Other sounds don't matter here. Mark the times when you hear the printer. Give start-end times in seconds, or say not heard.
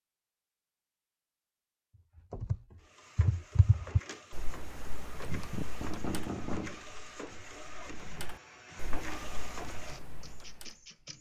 2.8-11.1.